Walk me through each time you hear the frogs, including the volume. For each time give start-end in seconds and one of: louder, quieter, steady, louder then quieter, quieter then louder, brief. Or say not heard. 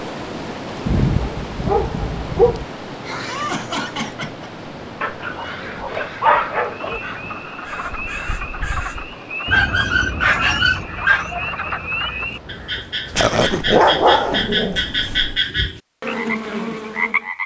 6.6-17.4 louder.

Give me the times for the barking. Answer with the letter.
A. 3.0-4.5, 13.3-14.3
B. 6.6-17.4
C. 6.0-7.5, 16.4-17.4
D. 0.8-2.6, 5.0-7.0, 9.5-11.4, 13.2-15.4
D.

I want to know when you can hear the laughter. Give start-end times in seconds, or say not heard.
3.0-4.5, 13.3-14.3.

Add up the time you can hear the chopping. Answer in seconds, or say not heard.
not heard.